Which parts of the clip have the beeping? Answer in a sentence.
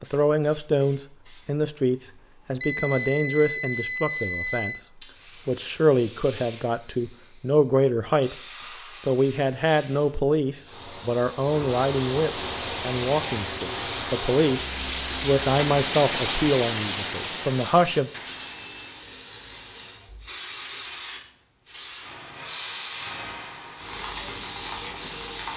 You can hear the beeping from 2.6 to 4.8 s and from 18.4 to 19.1 s.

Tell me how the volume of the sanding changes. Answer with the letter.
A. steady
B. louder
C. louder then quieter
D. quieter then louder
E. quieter
C.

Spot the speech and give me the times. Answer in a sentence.
The speech can be heard from 0.0 to 4.8 s, from 5.5 to 8.3 s and from 9.1 to 18.1 s.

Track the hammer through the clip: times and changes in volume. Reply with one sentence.
The hammer can't be heard in this clip.